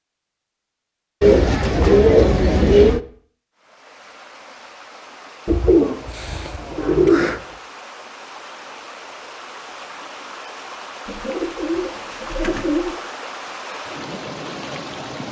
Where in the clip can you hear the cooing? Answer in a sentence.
You can hear the cooing from 1.2 to 3.0 s, from 5.5 to 7.4 s and from 11.1 to 12.9 s.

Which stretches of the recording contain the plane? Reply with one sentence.
You can't hear the plane here.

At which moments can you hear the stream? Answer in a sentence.
The stream can be heard from 3.5 to 15.2 s.